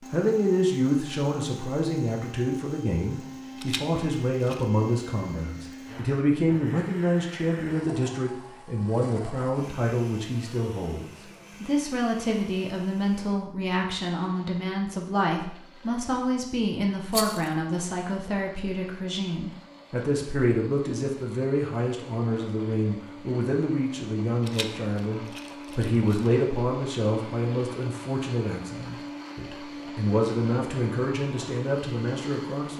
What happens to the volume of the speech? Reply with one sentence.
The loudness of the speech stays about the same.